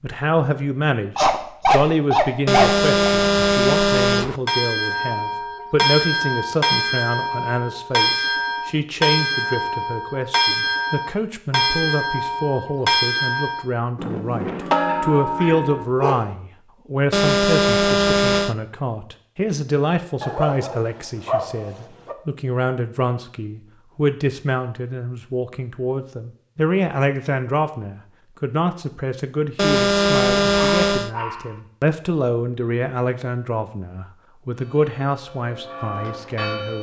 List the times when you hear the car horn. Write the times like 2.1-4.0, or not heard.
2.5-4.4, 17.1-18.6, 29.6-31.1.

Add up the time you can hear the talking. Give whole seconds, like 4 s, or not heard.
37 s.